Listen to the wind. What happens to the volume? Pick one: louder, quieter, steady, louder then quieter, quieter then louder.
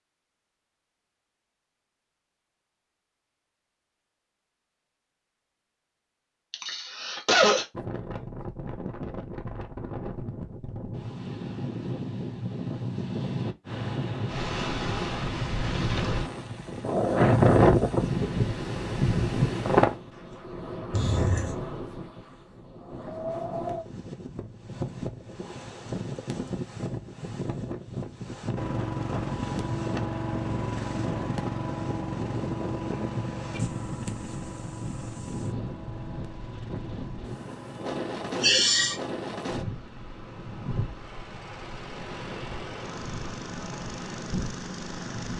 louder then quieter.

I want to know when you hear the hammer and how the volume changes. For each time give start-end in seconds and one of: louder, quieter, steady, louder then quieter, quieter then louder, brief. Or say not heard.
not heard.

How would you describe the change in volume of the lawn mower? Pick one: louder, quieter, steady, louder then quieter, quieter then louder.
quieter then louder.